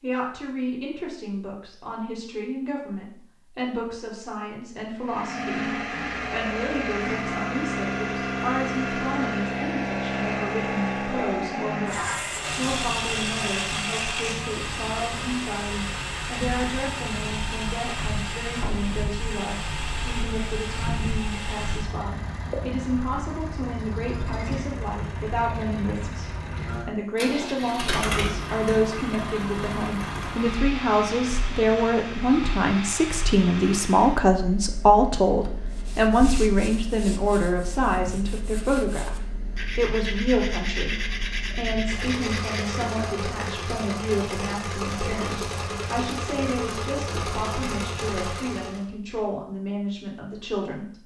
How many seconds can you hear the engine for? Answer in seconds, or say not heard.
44 s.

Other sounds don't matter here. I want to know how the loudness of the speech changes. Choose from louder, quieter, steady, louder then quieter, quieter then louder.
louder then quieter.